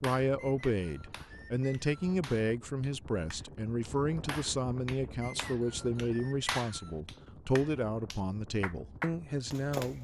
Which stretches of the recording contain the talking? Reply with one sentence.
You can hear the talking from 0.0 to 9.9 s.